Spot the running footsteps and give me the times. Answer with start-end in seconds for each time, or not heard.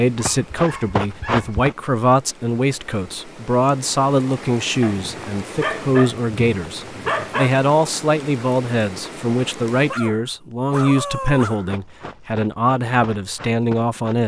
0.1-1.8, 11.6-14.2.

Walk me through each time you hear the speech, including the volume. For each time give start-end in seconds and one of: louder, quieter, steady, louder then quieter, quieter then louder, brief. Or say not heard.
0.0-14.2 steady.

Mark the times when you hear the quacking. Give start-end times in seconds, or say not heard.
not heard.